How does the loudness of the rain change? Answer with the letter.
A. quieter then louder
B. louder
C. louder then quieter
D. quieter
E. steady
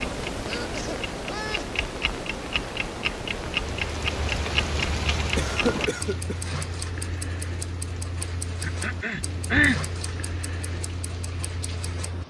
D.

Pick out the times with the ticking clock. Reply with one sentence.
You can hear the ticking clock from 0.0 to 12.2 s.